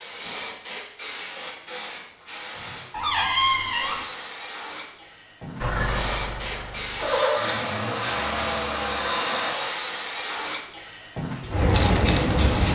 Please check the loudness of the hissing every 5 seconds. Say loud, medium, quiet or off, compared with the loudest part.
medium, medium, loud.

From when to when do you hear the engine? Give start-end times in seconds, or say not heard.
5.6-9.6.